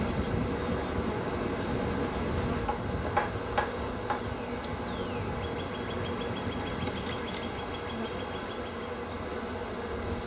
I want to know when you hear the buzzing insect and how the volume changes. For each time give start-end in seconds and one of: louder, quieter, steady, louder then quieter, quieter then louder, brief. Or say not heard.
0.0-10.2 steady.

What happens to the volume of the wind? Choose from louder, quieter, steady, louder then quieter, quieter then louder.
quieter.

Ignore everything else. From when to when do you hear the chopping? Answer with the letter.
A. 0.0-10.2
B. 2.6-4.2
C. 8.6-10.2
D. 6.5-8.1
B.